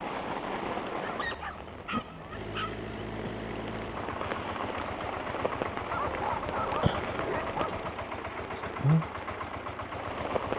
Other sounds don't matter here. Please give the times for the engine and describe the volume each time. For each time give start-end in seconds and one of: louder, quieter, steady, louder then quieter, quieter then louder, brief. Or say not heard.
0.1-10.5 louder.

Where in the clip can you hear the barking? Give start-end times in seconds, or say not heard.
1.0-2.9, 5.9-7.9.